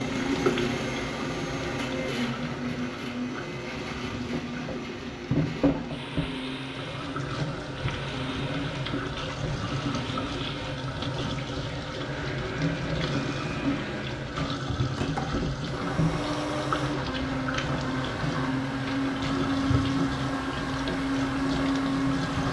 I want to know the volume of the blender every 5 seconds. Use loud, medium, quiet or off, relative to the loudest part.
loud, medium, medium, loud, loud.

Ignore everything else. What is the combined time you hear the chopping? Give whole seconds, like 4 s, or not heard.
not heard.